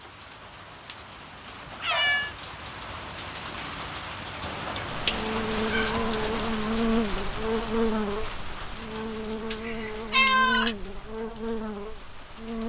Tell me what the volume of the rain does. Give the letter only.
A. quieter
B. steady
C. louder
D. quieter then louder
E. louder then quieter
E.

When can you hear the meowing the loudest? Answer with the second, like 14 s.
10 s.